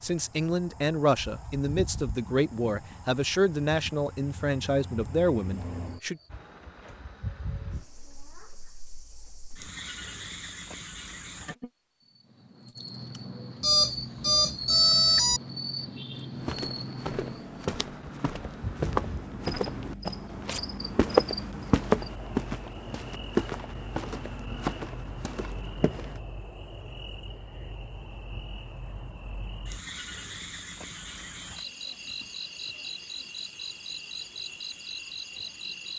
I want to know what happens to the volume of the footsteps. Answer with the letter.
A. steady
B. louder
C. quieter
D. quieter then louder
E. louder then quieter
E.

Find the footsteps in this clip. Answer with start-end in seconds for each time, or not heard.
16.4-26.2.